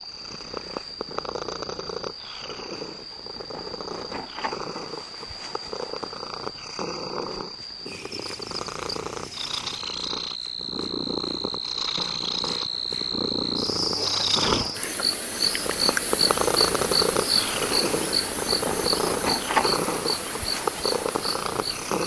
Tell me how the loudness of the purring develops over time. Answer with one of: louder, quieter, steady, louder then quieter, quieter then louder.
louder.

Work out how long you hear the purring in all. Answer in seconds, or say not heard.
22 s.